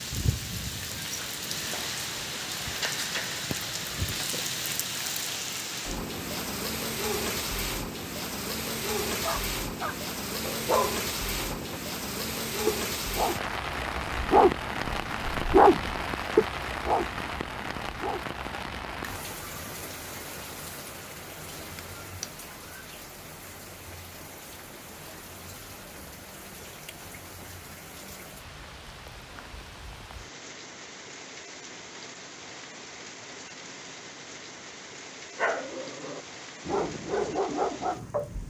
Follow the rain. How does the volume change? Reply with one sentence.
The volume of the rain goes down.